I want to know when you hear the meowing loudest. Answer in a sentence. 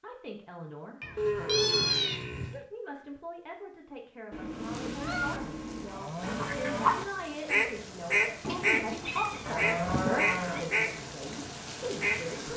The loudest moment of the meowing is at 2 seconds.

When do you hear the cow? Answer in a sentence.
You can hear the cow from 1.1 to 2.6 s, from 5.4 to 6.9 s and from 9.4 to 10.7 s.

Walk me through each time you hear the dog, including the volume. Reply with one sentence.
The dog can't be heard in this clip.